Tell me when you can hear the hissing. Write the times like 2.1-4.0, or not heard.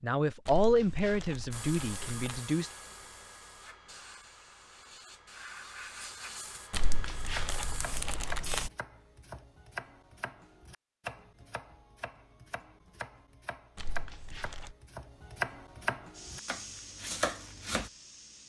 1.5-8.7, 16.1-18.4.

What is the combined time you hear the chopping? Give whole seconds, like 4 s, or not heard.
11 s.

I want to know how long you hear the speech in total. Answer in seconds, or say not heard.
3 s.